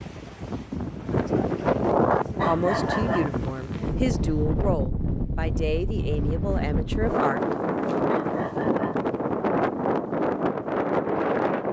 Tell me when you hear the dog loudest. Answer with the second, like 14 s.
3 s.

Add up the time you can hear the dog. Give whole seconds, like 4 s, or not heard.
2 s.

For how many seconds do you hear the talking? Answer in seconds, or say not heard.
5 s.